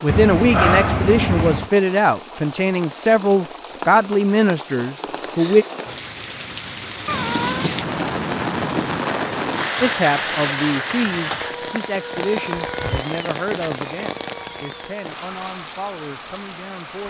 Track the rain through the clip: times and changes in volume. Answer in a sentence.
The rain can be heard from 0.0 to 17.0 s, getting louder then quieter.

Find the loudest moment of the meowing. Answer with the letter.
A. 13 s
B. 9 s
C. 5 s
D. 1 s
D.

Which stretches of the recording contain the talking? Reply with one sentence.
You can hear the talking from 0.0 to 5.7 s and from 9.8 to 17.0 s.